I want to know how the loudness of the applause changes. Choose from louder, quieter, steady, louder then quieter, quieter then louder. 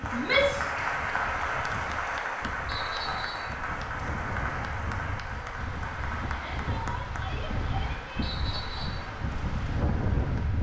quieter.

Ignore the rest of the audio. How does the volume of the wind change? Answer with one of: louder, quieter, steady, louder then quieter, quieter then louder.
louder.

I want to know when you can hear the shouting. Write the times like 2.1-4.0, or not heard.
0.1-0.8, 6.3-8.3.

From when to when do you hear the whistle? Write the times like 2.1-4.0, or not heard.
2.6-3.5, 8.2-9.1.